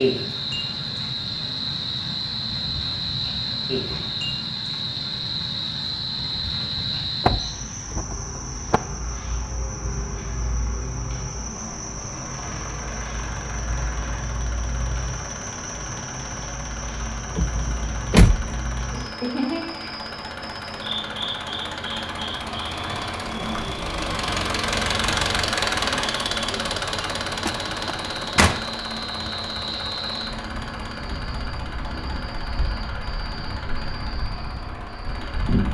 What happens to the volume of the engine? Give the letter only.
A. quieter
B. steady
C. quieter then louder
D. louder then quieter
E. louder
D.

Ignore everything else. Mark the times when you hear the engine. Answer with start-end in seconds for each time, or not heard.
0.0-35.6.